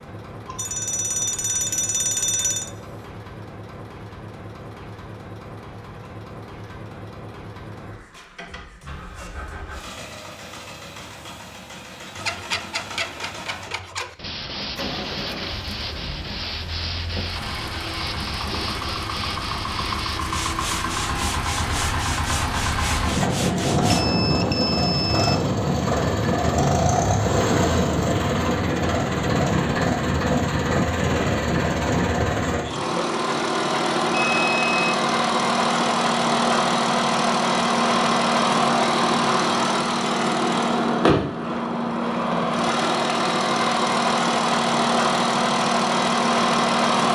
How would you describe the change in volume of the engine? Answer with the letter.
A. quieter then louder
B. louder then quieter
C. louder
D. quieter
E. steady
C.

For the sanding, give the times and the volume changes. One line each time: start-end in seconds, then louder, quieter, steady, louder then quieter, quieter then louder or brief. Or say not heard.
12.2-24.1 steady.